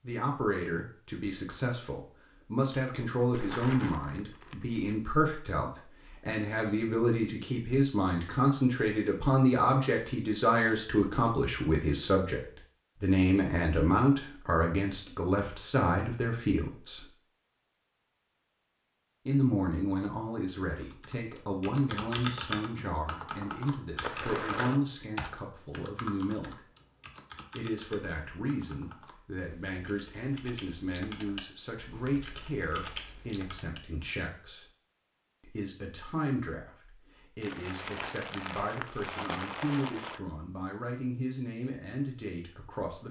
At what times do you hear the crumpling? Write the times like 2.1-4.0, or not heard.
3.3-5.0, 24.0-24.8, 37.4-40.2.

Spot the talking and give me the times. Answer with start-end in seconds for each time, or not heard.
0.0-17.1, 19.2-26.6, 27.5-34.6, 35.4-43.0.